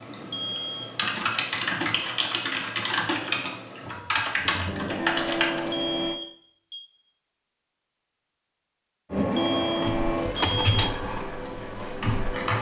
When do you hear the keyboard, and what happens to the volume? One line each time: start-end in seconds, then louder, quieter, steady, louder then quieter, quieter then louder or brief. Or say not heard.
0.0-5.8 steady
9.8-12.5 brief.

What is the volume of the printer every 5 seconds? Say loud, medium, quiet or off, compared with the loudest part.
quiet, loud, loud.